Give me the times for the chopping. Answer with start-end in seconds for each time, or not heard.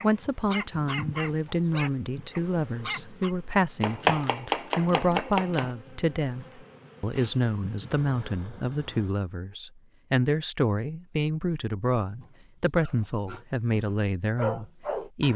3.8-5.7.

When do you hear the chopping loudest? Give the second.
4 s.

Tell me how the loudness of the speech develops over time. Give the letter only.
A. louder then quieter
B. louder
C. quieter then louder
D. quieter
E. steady
E.